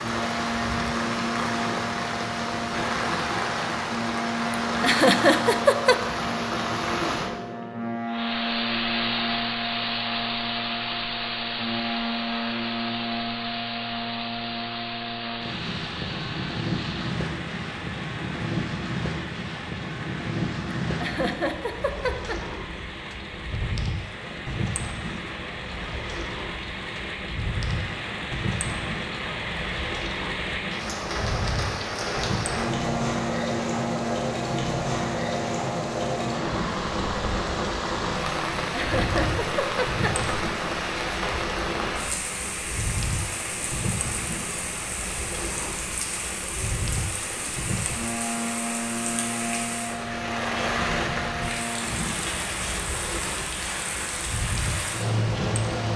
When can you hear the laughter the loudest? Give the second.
5 s.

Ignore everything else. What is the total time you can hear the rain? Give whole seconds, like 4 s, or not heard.
56 s.